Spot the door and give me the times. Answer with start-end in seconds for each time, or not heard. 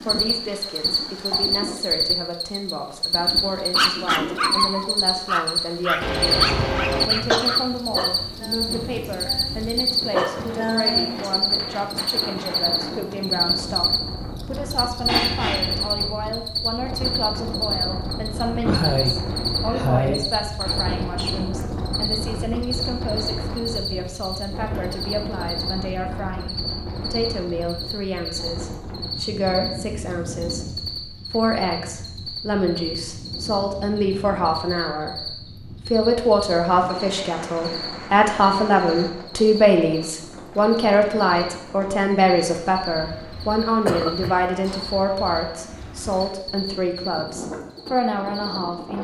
not heard.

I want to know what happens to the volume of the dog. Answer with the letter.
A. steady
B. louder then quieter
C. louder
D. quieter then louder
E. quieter
D.